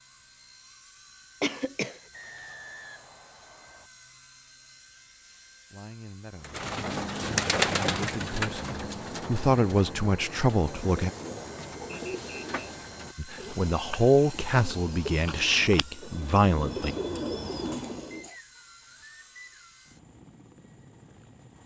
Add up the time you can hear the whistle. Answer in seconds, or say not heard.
4 s.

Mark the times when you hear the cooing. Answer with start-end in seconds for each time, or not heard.
6.4-18.2.